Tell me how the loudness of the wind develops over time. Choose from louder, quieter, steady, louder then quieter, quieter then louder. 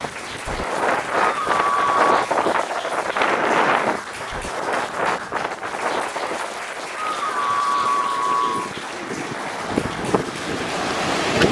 quieter then louder.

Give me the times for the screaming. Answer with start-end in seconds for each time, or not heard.
1.1-2.0, 7.0-8.7.